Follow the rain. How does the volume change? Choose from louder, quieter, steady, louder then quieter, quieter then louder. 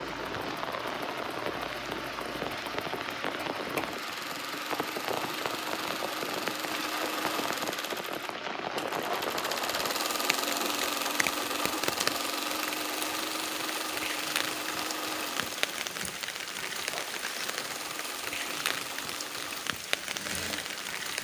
steady.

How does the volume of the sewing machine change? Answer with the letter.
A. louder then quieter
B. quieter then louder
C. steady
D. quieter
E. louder
A.